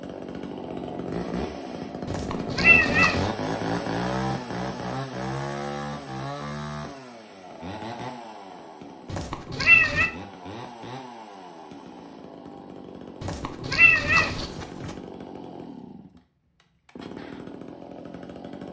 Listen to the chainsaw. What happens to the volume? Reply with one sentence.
The loudness of the chainsaw goes down.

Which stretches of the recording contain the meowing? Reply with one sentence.
The meowing can be heard from 2.0 to 3.3 s, from 9.1 to 10.1 s and from 13.2 to 14.9 s.